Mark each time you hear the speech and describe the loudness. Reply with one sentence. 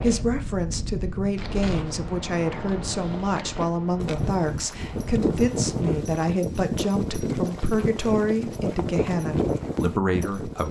The speech can be heard from 0.0 to 10.6 s, at a steady volume.